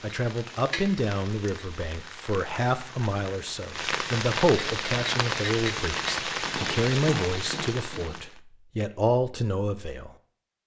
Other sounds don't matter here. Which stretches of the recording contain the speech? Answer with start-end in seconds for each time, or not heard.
0.0-10.1.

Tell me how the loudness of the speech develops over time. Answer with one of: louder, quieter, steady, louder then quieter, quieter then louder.
steady.